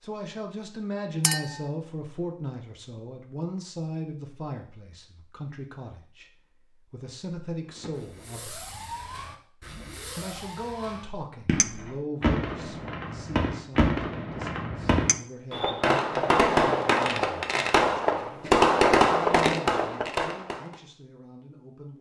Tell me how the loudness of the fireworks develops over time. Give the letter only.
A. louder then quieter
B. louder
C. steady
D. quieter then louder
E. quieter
B.